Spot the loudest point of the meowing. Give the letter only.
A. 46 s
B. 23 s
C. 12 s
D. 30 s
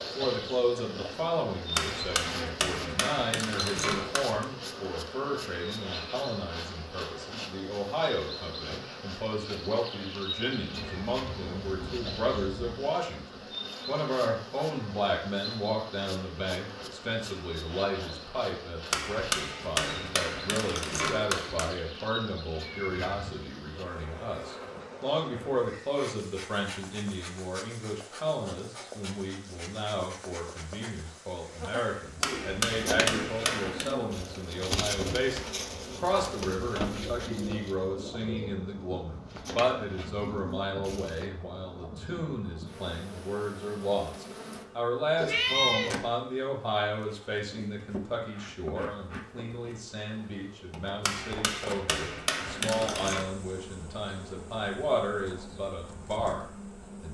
A.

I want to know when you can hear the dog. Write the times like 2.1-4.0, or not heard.
not heard.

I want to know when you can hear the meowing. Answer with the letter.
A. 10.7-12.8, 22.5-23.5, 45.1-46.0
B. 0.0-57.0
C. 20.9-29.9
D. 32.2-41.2
A.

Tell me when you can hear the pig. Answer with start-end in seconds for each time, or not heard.
not heard.